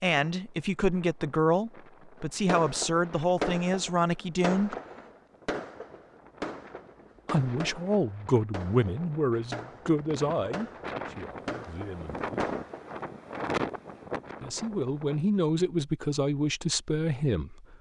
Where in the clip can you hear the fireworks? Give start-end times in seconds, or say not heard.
2.5-13.1.